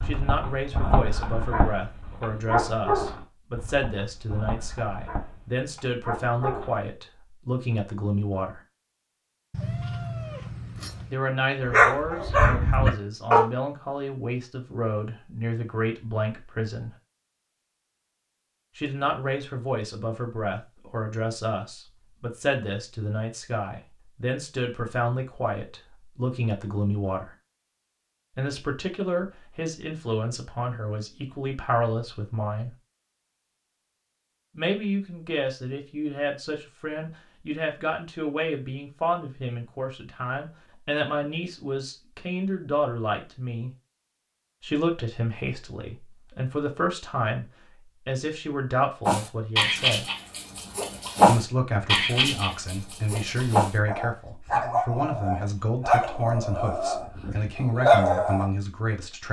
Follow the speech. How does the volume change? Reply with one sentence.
The volume of the speech stays about the same.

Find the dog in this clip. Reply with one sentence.
The dog can be heard from 0.0 to 6.8 s, from 11.6 to 13.4 s and from 49.0 to 58.5 s.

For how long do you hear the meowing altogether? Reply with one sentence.
The meowing can be heard for 2 seconds in total.